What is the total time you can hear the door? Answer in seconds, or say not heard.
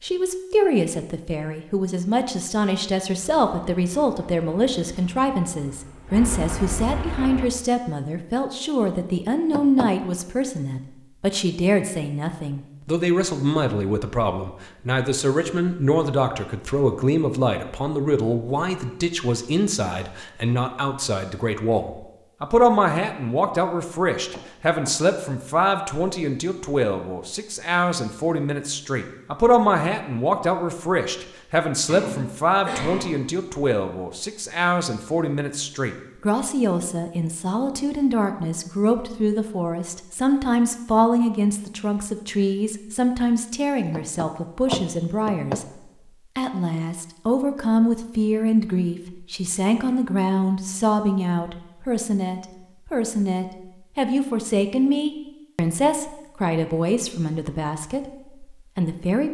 3 s.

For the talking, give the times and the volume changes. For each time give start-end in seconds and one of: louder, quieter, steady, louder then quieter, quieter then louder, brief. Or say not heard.
0.0-59.2 steady.